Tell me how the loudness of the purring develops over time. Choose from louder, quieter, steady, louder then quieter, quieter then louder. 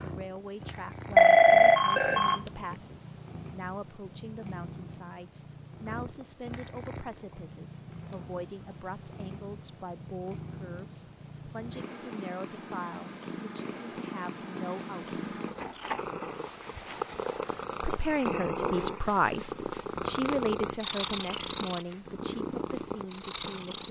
louder.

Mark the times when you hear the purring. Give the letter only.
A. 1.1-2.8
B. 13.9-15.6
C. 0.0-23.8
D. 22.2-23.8
C.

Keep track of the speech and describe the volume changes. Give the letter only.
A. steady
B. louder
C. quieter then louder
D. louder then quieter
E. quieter
B.